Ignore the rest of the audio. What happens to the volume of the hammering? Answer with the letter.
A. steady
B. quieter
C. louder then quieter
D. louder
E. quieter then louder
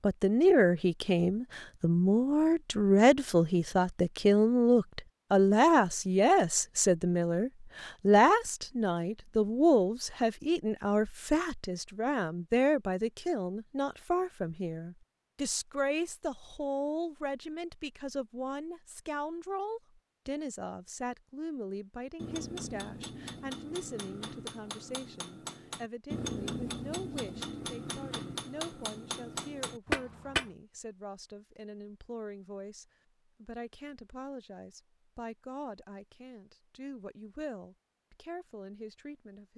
D.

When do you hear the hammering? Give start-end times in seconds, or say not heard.
22.1-30.5.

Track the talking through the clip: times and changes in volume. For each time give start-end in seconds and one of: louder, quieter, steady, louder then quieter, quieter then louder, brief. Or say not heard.
0.0-39.5 quieter.